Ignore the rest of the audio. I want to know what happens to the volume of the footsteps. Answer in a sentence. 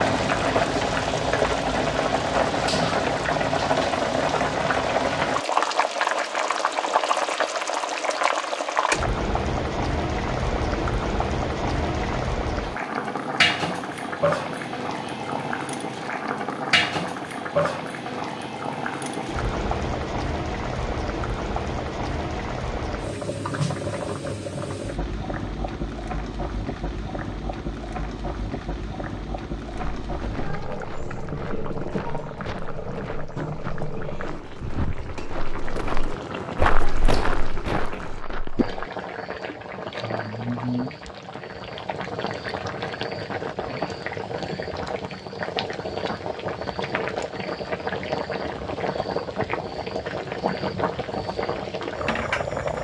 The loudness of the footsteps goes up.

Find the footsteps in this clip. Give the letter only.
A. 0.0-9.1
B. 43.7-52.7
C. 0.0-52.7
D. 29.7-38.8
D.